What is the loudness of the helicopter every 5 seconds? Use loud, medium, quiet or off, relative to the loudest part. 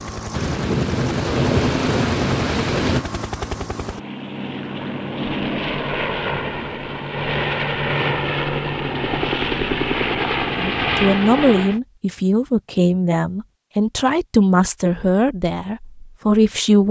medium, loud, loud, off.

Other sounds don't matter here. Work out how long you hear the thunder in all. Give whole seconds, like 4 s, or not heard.
3 s.